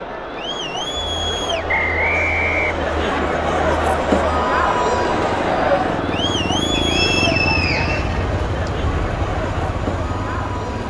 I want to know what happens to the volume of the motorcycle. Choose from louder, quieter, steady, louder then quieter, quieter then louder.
louder then quieter.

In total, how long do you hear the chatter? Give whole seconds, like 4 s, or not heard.
11 s.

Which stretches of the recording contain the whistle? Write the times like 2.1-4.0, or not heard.
1.6-3.2, 6.7-8.7.